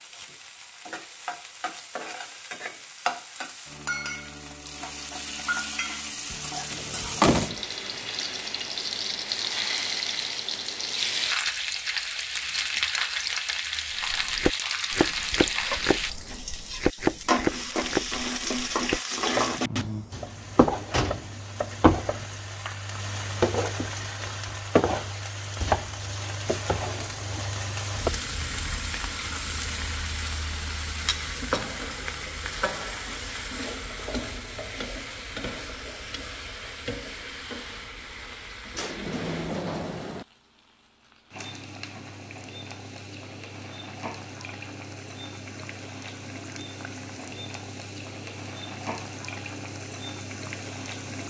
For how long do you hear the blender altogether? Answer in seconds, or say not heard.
not heard.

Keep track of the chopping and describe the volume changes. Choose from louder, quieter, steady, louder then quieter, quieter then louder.
quieter.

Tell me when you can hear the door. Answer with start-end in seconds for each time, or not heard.
6.7-7.6, 19.8-21.4, 38.7-40.2.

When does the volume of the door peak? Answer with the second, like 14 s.
7 s.